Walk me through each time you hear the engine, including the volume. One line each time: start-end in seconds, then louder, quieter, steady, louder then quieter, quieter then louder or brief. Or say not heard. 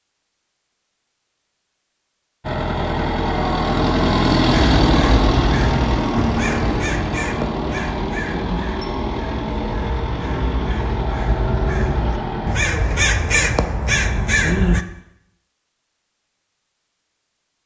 2.4-12.6 quieter.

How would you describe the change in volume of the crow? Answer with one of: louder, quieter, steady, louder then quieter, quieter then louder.
quieter then louder.